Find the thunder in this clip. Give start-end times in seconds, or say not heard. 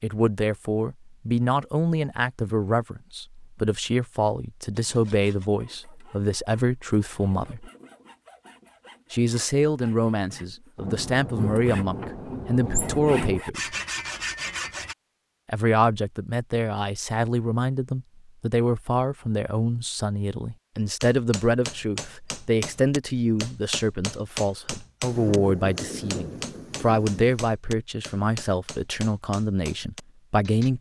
10.8-13.4, 25.1-27.4.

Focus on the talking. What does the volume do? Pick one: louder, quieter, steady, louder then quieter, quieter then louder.
steady.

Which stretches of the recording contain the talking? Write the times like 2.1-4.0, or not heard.
0.0-7.7, 9.1-13.8, 15.4-30.7.